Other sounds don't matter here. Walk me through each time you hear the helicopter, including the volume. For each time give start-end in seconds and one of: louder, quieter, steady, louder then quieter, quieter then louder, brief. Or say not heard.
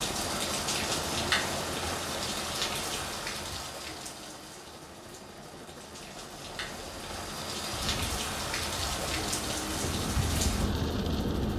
0.0-11.5 quieter then louder.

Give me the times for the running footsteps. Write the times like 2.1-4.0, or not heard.
not heard.